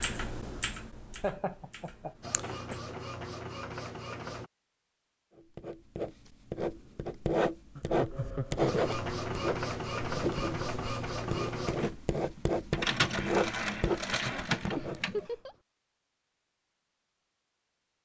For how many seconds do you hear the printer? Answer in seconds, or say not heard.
9 s.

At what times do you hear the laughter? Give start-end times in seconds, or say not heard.
1.2-2.8, 7.8-8.8, 14.8-15.6.